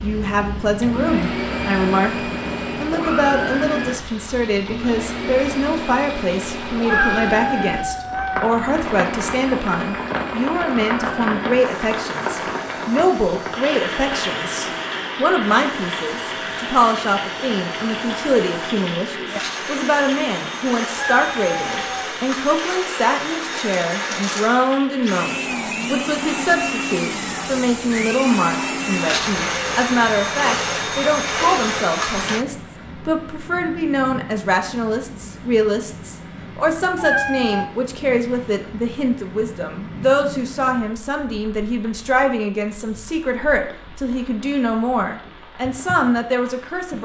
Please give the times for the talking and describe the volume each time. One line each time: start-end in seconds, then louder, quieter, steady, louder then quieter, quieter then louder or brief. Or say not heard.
0.0-46.9 steady.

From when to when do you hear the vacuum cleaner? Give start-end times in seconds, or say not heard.
0.0-32.5.